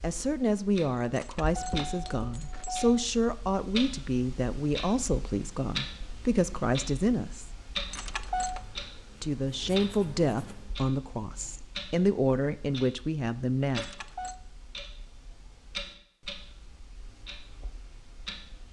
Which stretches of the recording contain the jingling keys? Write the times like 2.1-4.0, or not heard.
1.1-3.0, 7.9-8.6, 13.8-14.4.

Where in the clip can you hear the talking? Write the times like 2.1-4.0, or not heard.
0.0-7.5, 9.2-13.8.